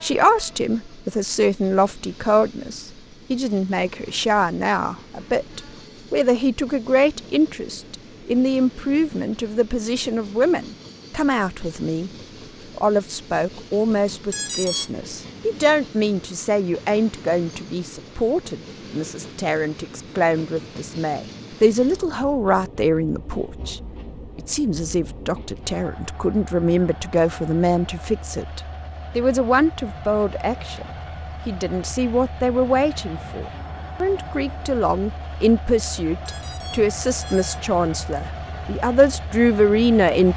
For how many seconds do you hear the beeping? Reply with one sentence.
The beeping can be heard for 2 seconds in total.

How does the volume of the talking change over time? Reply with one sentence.
The loudness of the talking stays about the same.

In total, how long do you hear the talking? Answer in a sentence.
You can hear the talking for 39 seconds altogether.